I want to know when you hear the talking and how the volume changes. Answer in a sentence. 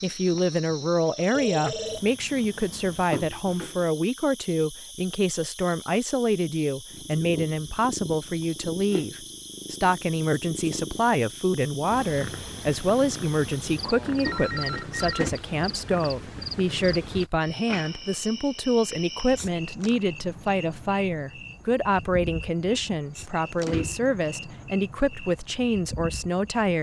The talking can be heard from 0.0 to 26.7 s, at a steady volume.